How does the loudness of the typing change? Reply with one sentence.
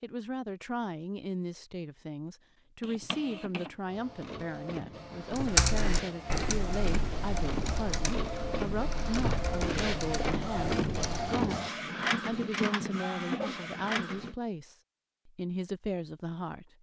The volume of the typing goes down.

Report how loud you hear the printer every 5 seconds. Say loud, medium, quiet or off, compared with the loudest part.
medium, loud, loud, off.